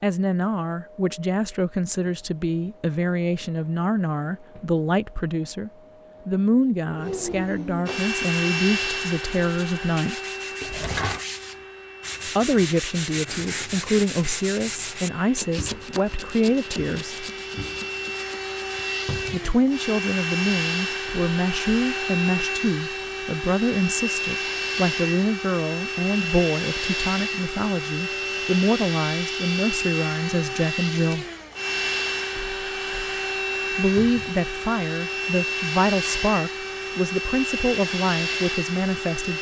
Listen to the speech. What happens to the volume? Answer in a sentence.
The volume of the speech stays about the same.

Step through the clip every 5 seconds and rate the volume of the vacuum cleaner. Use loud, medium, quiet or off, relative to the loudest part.
quiet, loud, medium, medium, loud, loud, loud, loud.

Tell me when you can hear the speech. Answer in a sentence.
The speech can be heard from 0.0 to 10.2 s, from 12.2 to 17.2 s, from 19.3 to 31.2 s and from 33.7 to 39.3 s.